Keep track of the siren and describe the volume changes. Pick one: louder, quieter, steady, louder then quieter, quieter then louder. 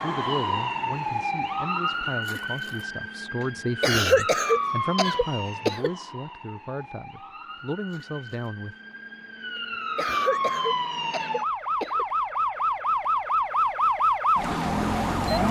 quieter then louder.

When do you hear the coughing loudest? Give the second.
4 s.